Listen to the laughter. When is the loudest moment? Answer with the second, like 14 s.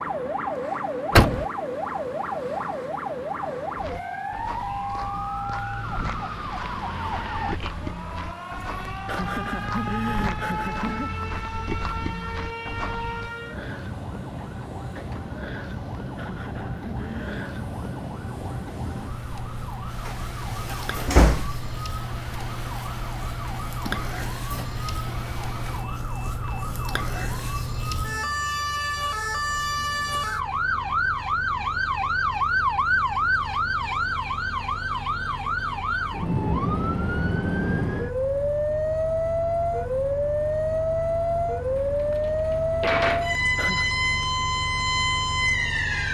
10 s.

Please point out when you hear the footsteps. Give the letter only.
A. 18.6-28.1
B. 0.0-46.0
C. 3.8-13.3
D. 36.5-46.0
C.